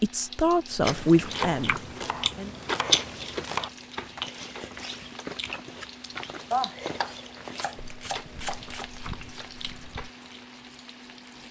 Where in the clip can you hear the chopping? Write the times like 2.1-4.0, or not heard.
1.3-3.7, 6.5-8.8.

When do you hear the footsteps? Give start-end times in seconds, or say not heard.
2.8-10.1.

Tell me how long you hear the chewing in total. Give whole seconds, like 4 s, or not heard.
10 s.